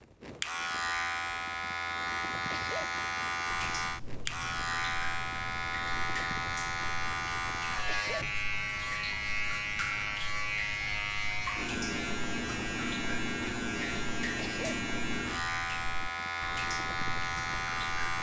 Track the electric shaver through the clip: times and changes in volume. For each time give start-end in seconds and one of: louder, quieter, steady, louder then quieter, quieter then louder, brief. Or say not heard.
0.0-18.1 steady.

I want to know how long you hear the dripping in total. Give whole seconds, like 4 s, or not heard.
15 s.